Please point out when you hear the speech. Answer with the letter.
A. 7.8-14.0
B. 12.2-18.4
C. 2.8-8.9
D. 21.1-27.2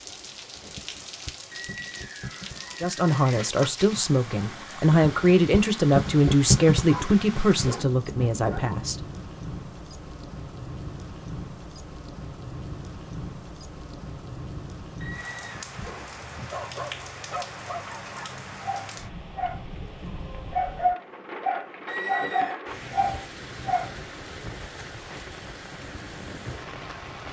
C.